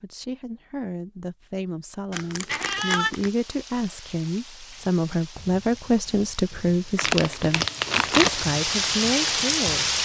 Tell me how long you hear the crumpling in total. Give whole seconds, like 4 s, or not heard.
3 s.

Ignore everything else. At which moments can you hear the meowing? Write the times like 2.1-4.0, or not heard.
2.5-3.1.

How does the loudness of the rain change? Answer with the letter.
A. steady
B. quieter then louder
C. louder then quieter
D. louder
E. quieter
D.